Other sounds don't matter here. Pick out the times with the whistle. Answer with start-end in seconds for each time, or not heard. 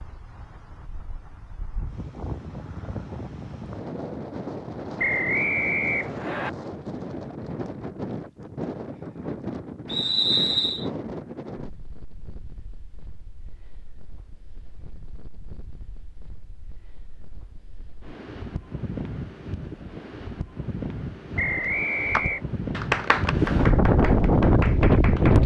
5.0-6.5, 9.8-10.8, 21.4-22.4.